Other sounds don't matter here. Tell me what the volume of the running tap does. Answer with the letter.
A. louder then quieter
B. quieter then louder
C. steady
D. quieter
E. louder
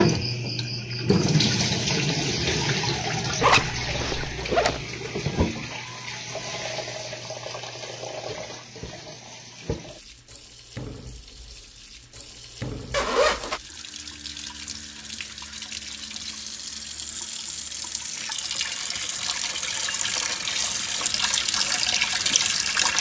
B.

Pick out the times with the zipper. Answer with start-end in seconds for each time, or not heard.
3.4-4.8, 12.9-13.6.